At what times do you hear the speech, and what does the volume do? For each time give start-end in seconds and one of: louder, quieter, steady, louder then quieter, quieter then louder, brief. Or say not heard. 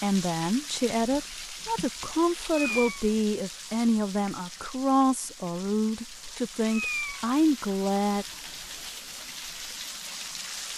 0.0-8.2 steady.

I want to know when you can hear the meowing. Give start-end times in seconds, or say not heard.
2.4-3.1, 6.6-7.3.